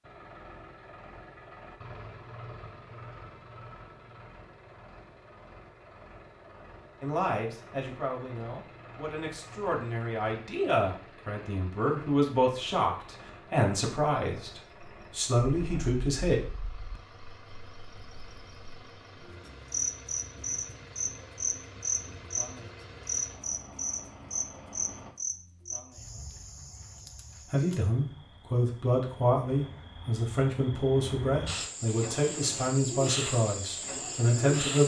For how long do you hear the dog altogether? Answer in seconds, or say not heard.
not heard.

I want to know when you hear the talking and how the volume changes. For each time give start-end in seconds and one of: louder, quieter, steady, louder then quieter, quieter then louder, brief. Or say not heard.
7.0-16.4 louder
27.5-34.8 steady.